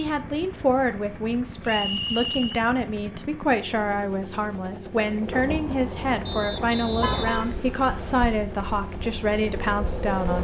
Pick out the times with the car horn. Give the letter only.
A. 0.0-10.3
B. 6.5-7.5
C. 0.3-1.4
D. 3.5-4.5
B.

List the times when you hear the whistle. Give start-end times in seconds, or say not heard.
1.6-2.6, 6.2-8.2.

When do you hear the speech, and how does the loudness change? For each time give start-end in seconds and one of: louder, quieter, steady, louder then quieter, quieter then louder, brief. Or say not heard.
0.0-10.3 steady.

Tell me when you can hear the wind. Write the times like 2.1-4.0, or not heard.
4.8-10.3.